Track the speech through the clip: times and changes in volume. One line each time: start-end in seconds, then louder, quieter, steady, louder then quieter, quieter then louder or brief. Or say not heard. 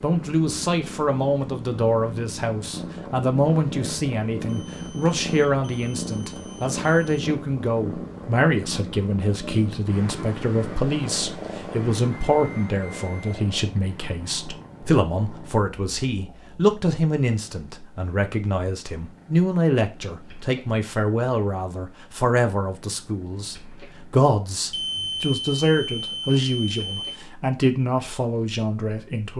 0.0-29.3 steady.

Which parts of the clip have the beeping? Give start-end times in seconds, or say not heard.
4.5-7.2, 12.2-13.4, 24.7-27.2.